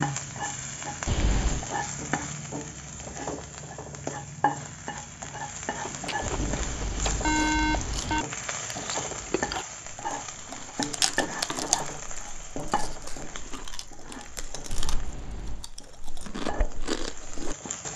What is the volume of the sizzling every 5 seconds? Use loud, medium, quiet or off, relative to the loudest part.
loud, loud, loud, medium.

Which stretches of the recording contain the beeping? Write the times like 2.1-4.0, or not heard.
1.1-1.6, 6.2-8.2, 14.7-15.7.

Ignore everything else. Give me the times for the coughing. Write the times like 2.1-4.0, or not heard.
not heard.